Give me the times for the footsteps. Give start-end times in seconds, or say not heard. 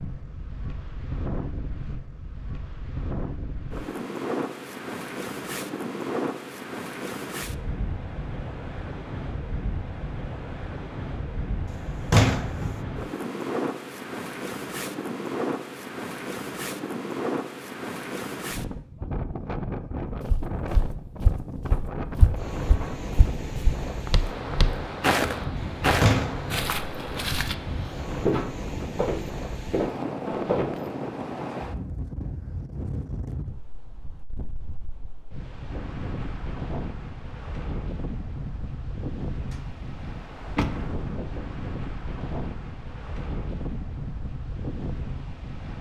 20.2-30.9.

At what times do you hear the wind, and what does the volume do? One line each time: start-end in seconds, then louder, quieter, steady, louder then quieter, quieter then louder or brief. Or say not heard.
0.0-45.7 steady.